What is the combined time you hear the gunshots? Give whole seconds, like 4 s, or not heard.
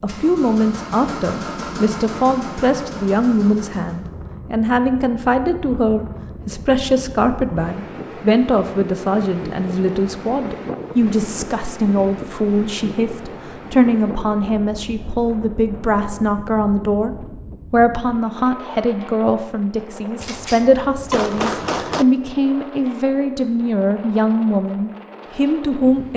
2 s.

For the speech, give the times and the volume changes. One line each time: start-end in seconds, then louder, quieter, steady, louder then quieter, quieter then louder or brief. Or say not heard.
0.0-26.1 steady.